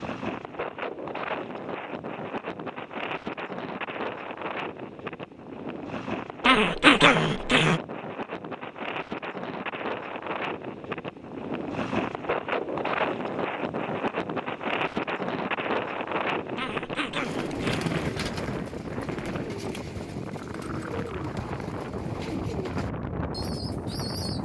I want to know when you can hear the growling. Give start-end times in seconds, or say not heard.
6.5-7.8, 16.6-18.1.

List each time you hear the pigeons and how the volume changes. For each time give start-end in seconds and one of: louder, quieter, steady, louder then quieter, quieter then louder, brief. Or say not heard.
17.1-24.4 steady.